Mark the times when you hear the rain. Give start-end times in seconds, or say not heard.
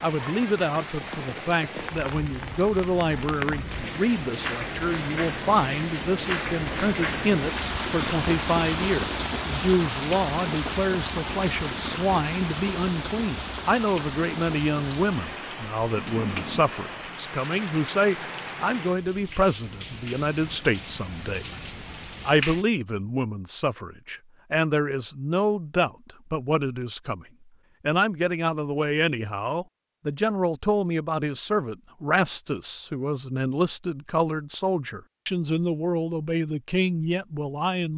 0.0-22.6.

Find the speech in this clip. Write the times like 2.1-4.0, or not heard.
0.0-21.4, 22.2-27.2, 27.9-37.9.